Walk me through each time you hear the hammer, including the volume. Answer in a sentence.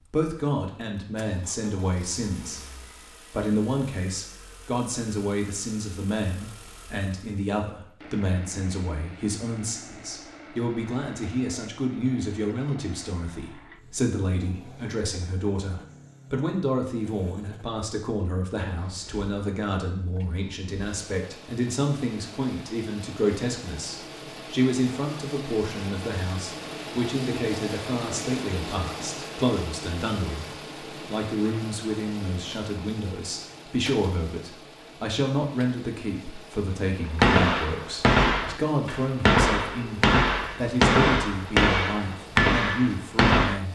The hammer can be heard from 37.1 to 43.6 s, at a steady volume.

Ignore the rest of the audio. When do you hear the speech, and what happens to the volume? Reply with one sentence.
The speech can be heard briefly from 0.1 to 2.6 s; and from 3.3 to 43.7 s, at a steady volume.